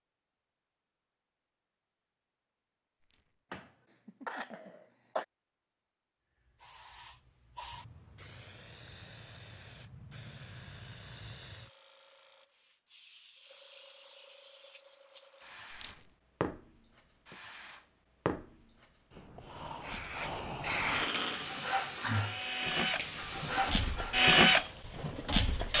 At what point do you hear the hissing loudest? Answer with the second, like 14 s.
21 s.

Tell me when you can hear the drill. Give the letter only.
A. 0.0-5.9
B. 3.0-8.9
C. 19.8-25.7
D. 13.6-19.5
C.